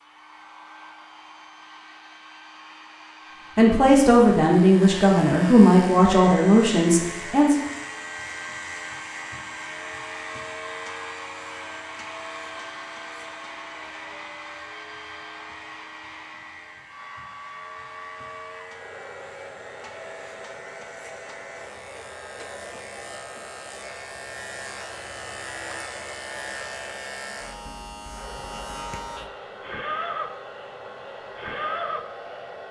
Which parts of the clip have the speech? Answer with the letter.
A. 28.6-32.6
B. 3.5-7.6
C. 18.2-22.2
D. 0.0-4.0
B.